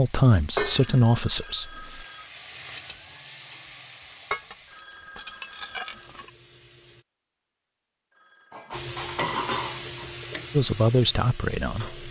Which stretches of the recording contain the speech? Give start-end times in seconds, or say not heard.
0.0-2.0, 10.5-12.0.